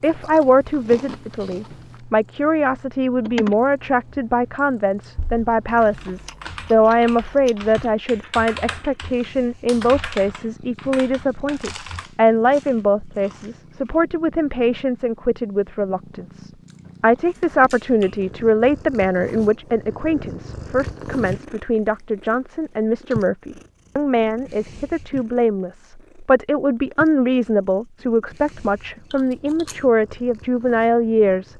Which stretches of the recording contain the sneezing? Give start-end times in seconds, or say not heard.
not heard.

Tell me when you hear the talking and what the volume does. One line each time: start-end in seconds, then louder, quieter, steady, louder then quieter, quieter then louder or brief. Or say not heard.
0.0-31.5 steady.